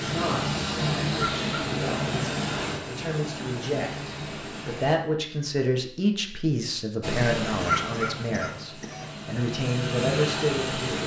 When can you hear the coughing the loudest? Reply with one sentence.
The loudest moment of the coughing is at 8 seconds.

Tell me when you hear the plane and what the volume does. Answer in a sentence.
The plane can be heard from 0.0 to 5.0 s, getting quieter; and from 7.0 to 11.0 s, getting quieter then louder.